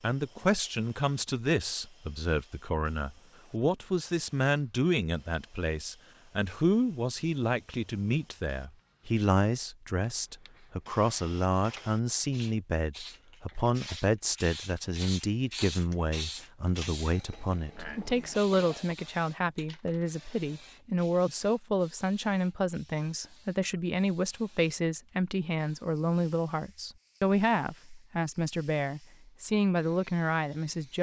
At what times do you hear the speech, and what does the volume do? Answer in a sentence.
The speech can be heard from 0.0 to 30.9 s, at a steady volume.